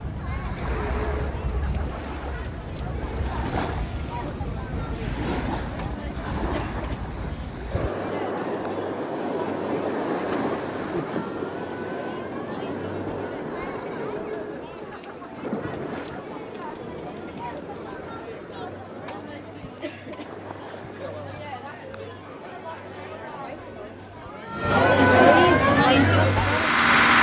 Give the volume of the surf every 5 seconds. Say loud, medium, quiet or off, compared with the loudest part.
loud, loud, loud, medium, quiet, off.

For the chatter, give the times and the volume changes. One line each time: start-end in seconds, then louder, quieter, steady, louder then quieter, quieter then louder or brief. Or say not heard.
0.0-26.9 louder.